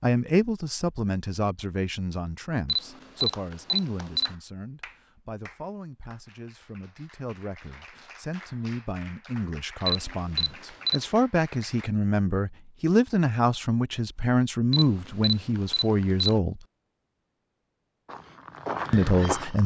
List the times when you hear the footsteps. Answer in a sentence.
You can hear the footsteps from 18.1 to 19.6 s.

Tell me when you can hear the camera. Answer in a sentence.
You can hear the camera from 2.6 to 4.3 s, from 9.8 to 11.1 s and from 14.7 to 16.4 s.